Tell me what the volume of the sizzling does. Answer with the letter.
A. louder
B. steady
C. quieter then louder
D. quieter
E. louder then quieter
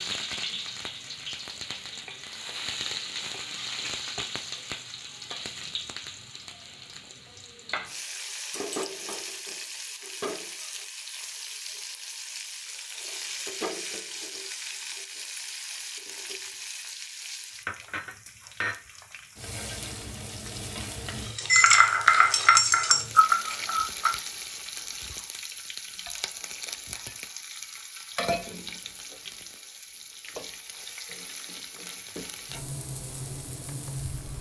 B.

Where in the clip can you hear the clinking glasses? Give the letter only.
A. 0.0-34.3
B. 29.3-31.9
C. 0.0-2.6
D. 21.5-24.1
D.